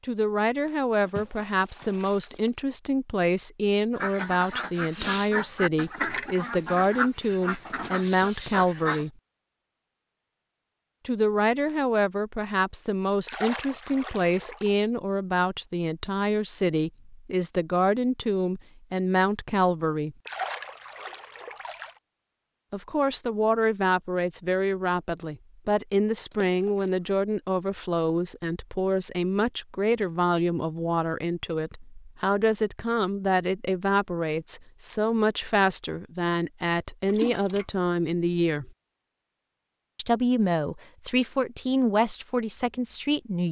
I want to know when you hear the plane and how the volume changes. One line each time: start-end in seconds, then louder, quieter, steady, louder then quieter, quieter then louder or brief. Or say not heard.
not heard.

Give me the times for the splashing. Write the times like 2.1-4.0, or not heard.
1.0-2.5, 13.2-14.8, 20.2-21.9, 26.3-26.9, 37.0-37.6.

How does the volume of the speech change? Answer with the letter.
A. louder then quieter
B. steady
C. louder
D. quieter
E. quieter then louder
B.